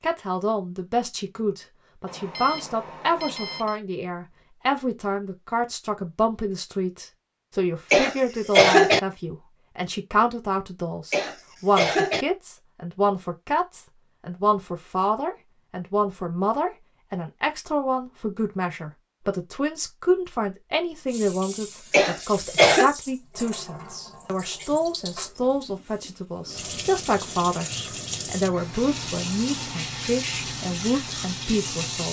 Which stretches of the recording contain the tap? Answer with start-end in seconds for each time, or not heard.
21.1-32.0.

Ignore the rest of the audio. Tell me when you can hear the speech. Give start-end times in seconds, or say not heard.
0.0-32.0.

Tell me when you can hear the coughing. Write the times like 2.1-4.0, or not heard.
7.9-9.0, 11.1-12.2, 21.9-22.9.